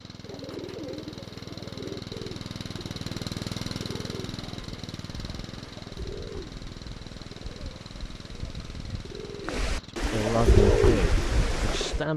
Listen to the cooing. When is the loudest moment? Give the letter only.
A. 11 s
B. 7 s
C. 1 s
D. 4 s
A.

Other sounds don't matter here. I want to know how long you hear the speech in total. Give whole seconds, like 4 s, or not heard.
2 s.